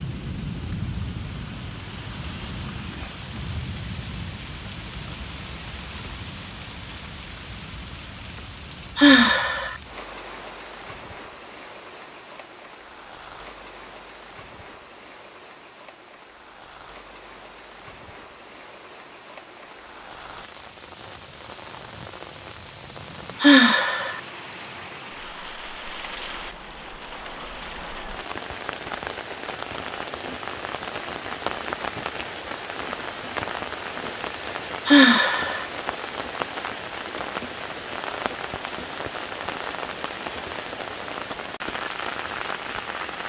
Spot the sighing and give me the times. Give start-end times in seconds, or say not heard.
8.9-9.8, 23.4-24.2, 34.9-35.6.